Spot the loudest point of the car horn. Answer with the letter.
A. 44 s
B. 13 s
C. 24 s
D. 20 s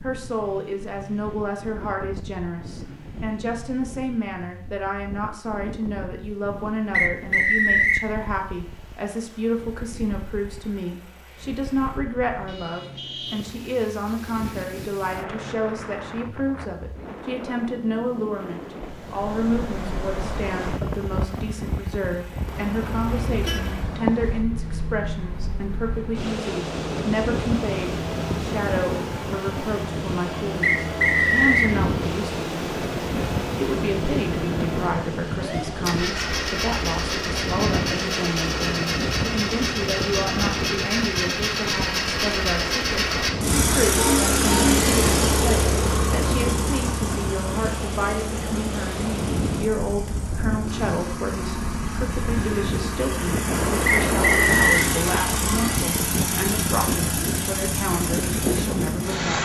A.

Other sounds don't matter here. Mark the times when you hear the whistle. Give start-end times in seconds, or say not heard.
6.9-8.1, 30.6-31.8, 53.9-54.9.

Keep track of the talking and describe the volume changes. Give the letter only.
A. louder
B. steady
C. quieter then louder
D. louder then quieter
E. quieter
B.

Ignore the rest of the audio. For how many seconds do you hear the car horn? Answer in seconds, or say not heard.
3 s.